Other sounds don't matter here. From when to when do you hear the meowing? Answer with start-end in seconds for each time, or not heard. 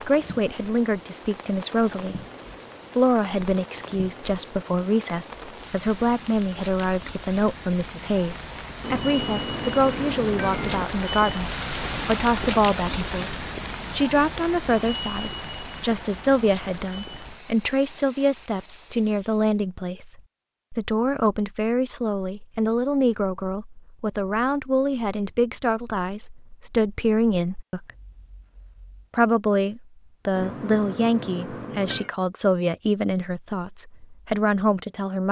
8.8-10.8, 30.4-32.1.